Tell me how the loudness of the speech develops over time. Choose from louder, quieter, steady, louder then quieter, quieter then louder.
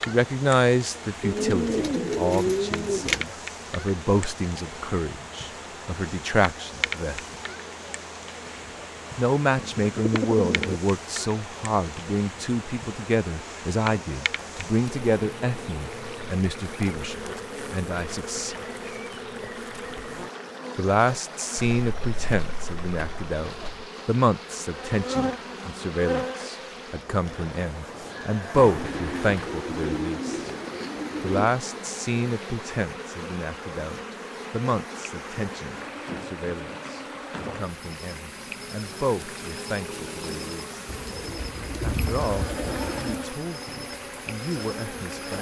quieter.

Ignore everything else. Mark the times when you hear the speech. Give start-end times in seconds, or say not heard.
0.0-7.2, 9.2-18.6, 20.8-30.5, 31.2-40.8, 41.8-45.3.